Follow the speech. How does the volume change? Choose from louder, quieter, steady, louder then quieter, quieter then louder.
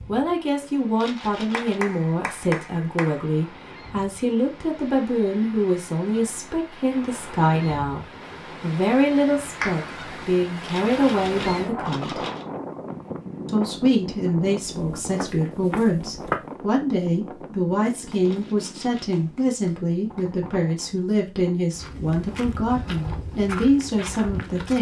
steady.